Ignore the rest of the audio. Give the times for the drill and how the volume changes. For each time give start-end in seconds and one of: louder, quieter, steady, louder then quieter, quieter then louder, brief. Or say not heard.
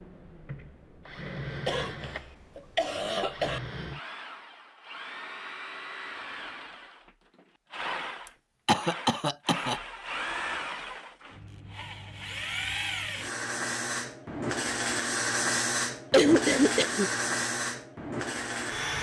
0.0-18.9 louder.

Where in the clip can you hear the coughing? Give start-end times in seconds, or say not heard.
1.6-3.6, 8.7-9.8, 16.1-17.1.